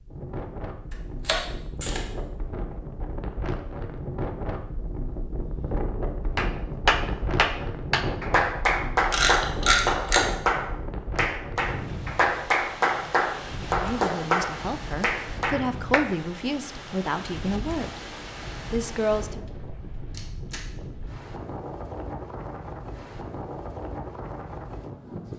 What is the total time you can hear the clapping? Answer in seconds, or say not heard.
10 s.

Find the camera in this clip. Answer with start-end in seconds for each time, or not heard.
1.2-2.0, 9.1-10.2, 20.1-20.6.